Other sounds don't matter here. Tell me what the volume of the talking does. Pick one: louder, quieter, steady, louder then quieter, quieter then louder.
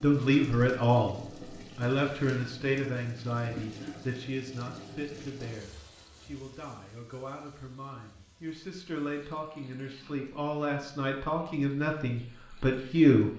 quieter then louder.